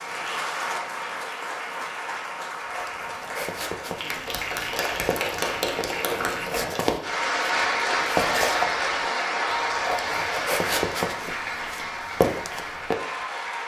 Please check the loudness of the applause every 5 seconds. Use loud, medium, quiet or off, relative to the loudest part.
medium, loud, medium.